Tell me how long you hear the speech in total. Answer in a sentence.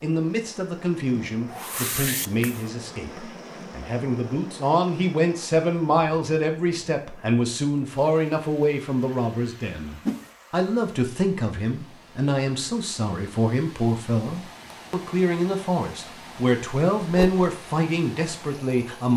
You can hear the speech for 19 seconds altogether.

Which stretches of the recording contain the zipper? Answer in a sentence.
You can't hear the zipper here.